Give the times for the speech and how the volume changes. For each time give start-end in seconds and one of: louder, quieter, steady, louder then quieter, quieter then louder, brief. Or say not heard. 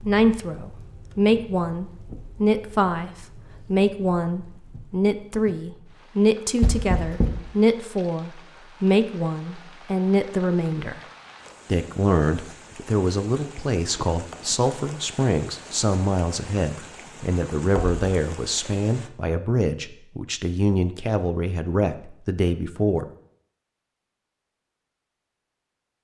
0.1-11.0 steady
11.7-23.1 steady.